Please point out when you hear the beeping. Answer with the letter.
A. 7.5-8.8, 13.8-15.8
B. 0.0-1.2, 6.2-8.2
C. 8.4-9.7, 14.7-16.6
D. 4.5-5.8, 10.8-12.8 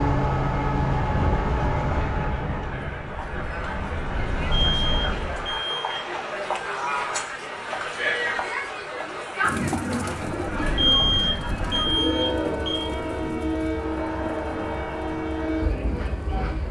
D.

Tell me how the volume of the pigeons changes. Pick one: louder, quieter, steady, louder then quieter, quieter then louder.
quieter.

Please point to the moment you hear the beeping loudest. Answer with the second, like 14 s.
11 s.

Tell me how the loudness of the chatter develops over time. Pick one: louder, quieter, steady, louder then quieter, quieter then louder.
louder then quieter.